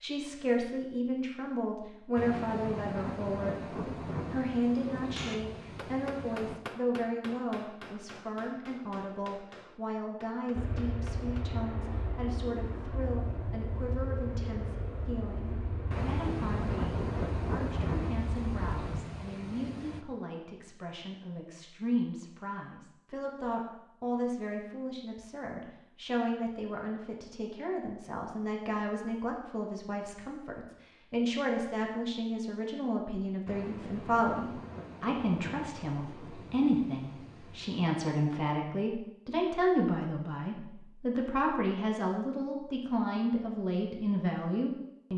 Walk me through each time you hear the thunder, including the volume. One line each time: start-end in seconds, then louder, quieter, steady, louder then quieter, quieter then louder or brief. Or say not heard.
2.1-6.6 quieter
15.9-20.0 quieter
33.5-37.9 quieter.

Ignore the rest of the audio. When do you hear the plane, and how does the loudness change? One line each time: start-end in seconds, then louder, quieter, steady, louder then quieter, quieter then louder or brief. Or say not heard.
10.6-19.0 steady.